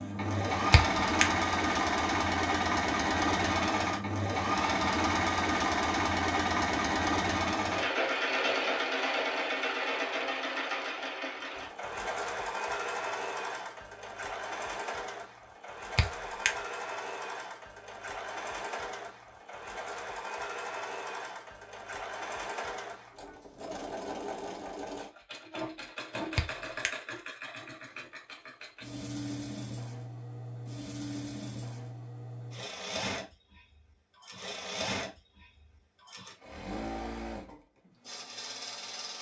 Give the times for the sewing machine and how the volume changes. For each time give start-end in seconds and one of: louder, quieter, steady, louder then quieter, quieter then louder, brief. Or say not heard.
0.0-39.1 quieter.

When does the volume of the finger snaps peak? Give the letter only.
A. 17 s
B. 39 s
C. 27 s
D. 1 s
D.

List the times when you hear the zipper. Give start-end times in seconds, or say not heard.
not heard.